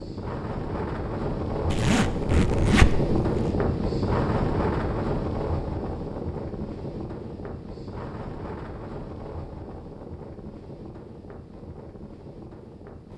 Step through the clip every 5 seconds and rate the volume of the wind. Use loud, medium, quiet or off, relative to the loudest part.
loud, medium, quiet.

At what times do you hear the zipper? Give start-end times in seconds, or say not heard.
1.7-3.5.